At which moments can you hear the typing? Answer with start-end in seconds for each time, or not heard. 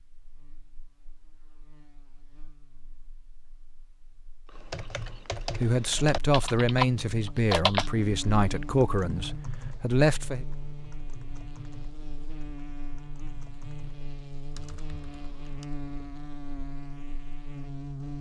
4.5-15.7.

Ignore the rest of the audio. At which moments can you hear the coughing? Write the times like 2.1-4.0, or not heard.
not heard.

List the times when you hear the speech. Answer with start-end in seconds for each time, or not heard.
5.5-10.4.